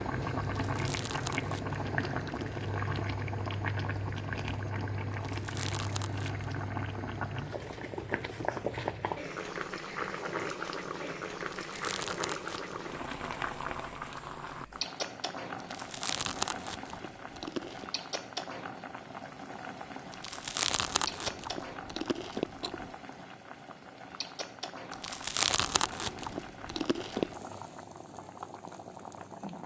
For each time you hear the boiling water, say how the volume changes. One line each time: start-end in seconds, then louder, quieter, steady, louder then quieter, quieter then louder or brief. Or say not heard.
0.0-29.6 quieter.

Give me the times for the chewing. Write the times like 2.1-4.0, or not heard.
0.6-2.8, 5.1-6.5, 11.4-12.8, 15.6-17.9, 20.1-22.9, 24.9-27.4.